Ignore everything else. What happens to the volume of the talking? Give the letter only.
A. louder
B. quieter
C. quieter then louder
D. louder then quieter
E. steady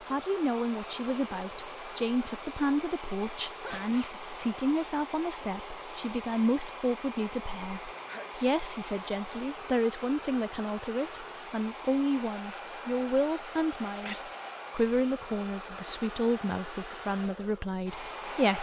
E.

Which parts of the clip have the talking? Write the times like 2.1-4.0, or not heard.
0.1-18.5.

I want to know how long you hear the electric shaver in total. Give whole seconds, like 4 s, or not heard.
not heard.